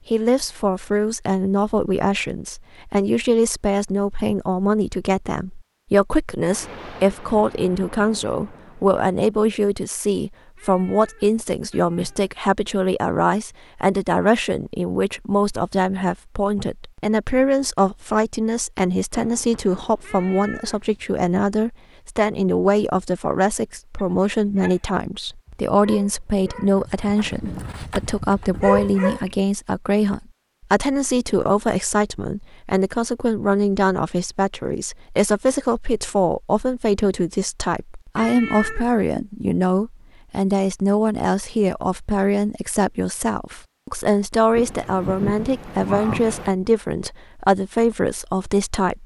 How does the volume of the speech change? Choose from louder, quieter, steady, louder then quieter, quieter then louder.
steady.